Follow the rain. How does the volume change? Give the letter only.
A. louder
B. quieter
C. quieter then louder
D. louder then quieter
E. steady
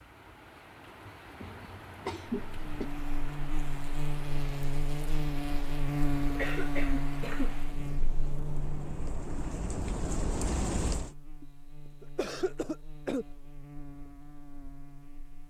A.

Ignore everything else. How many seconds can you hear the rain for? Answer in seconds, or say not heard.
11 s.